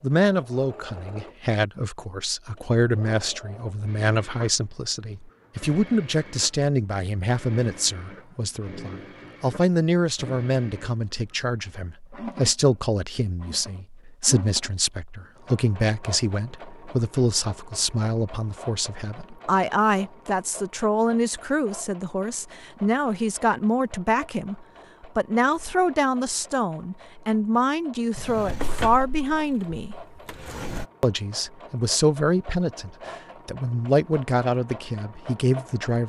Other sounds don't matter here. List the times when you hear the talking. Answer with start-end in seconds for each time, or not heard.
0.0-29.9, 31.0-36.0.